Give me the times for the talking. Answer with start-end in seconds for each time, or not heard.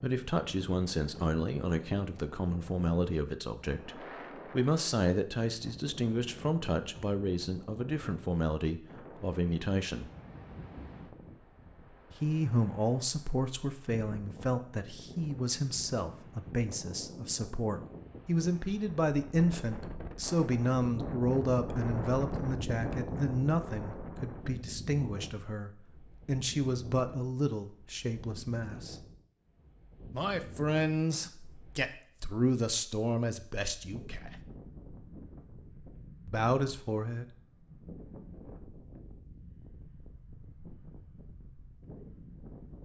0.0-10.1, 12.2-29.1, 30.1-34.4, 36.2-37.4.